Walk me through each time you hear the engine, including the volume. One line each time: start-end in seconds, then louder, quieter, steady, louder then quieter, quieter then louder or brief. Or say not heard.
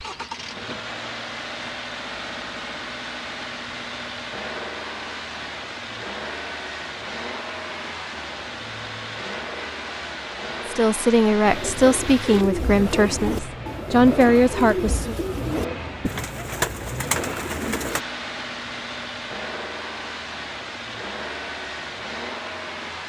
0.0-23.0 steady.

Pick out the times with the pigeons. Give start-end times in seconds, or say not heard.
11.4-18.0.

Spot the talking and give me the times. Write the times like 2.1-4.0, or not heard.
10.7-15.2.